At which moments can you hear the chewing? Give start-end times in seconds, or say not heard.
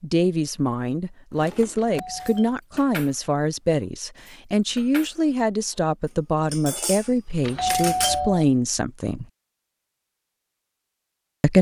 not heard.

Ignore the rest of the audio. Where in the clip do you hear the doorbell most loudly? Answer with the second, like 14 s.
8 s.